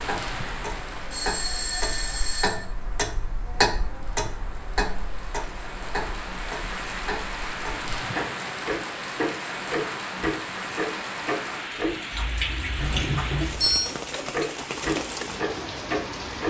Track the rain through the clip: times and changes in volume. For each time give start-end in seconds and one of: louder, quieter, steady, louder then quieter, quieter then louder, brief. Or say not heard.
0.0-16.4 louder.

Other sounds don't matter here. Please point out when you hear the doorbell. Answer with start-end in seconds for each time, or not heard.
1.1-2.6, 12.8-13.9.